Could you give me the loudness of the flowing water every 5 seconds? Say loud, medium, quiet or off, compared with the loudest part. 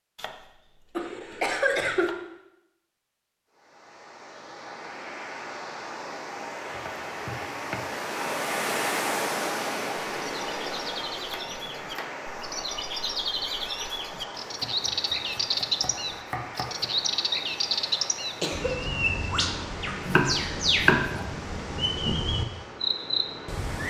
quiet, loud, medium, medium, medium.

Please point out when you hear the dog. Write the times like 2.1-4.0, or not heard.
not heard.